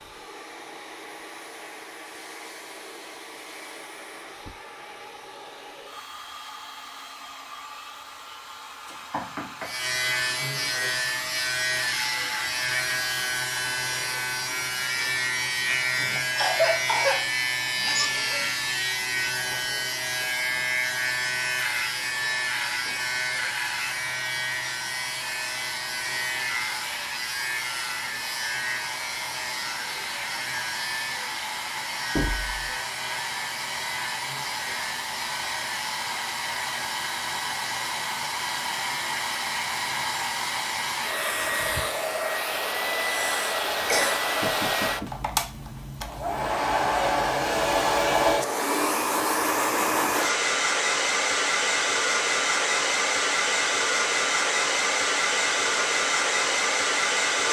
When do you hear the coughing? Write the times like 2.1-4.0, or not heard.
16.1-18.1, 43.0-44.2.